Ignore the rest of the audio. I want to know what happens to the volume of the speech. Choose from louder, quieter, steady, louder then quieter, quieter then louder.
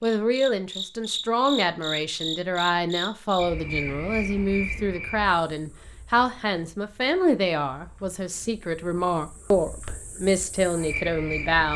steady.